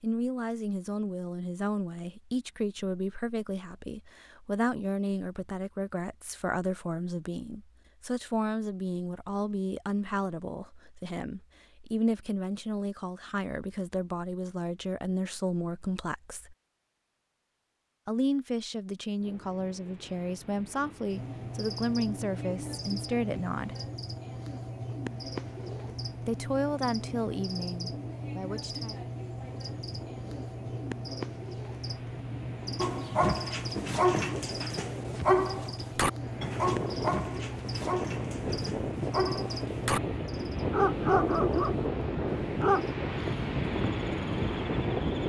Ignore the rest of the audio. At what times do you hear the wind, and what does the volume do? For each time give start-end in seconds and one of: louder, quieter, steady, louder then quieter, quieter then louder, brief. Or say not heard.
19.1-45.2 louder.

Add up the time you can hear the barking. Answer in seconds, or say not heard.
10 s.